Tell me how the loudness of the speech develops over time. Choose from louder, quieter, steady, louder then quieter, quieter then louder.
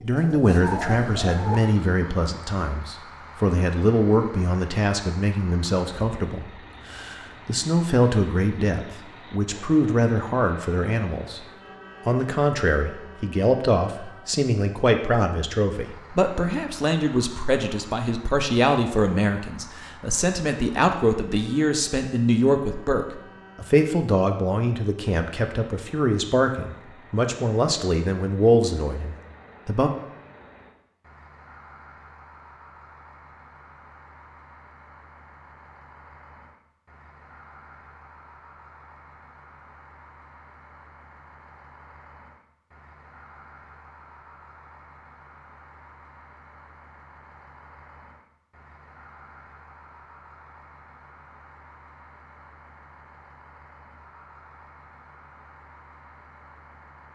steady.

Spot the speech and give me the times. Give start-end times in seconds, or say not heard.
0.0-11.4, 12.1-29.9.